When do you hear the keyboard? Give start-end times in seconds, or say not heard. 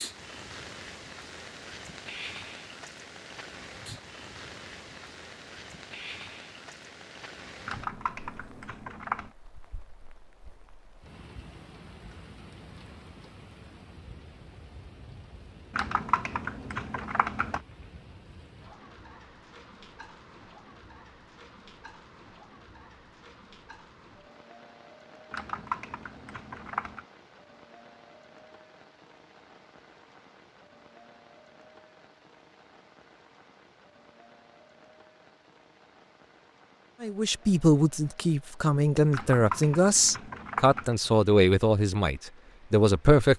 7.7-9.3, 15.7-17.6, 25.3-27.1, 39.1-41.0.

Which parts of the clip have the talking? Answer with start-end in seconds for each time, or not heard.
37.0-43.3.